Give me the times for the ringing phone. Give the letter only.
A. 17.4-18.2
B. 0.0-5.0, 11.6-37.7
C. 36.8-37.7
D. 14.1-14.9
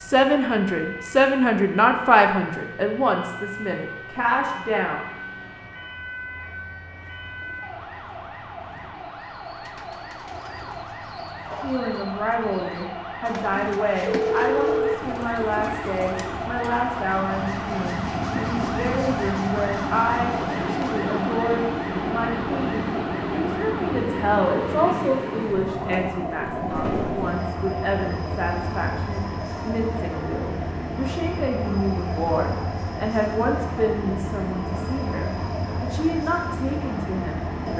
D.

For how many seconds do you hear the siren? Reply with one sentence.
The siren can be heard for 38 seconds in total.